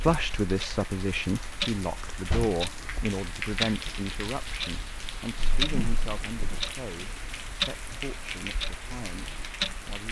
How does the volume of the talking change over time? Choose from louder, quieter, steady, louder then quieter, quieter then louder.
quieter.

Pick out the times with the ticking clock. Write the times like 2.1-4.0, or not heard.
0.0-10.0.